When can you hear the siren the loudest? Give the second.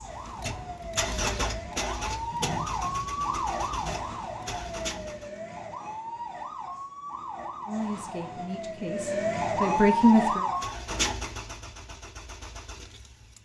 10 s.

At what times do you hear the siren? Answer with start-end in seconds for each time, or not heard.
0.0-10.8.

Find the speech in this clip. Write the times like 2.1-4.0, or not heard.
7.7-10.4.